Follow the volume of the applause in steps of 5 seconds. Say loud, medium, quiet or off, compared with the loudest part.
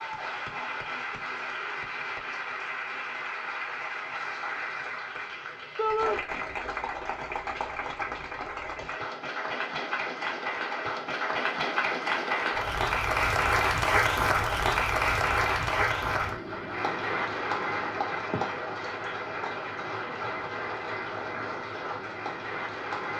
medium, medium, loud, loud, medium.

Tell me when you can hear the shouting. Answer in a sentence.
The shouting can be heard from 5.8 to 6.2 s.